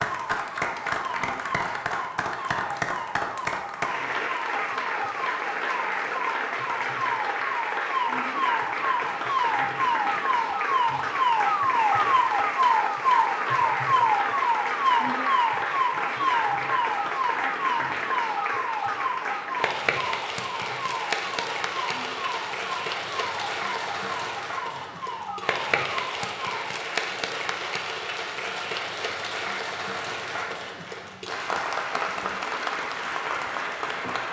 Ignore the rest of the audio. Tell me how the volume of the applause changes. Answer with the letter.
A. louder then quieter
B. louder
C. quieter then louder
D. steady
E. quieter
D.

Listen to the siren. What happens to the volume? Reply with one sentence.
The loudness of the siren goes up, then down.